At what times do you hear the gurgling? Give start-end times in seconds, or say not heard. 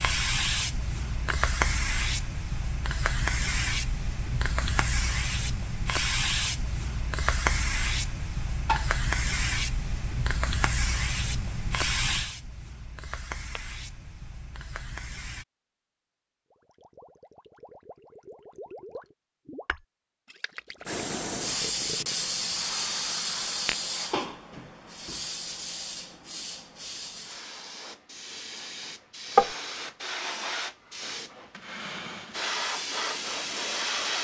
16.5-22.4.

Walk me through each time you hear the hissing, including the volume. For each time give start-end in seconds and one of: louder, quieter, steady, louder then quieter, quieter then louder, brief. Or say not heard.
0.0-15.4 quieter
20.9-34.1 quieter then louder.